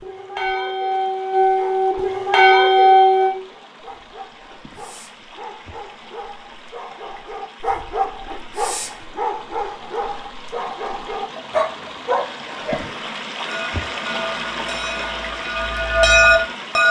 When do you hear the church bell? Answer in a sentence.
You can hear the church bell from 0.0 to 3.4 s and from 13.4 to 16.8 s.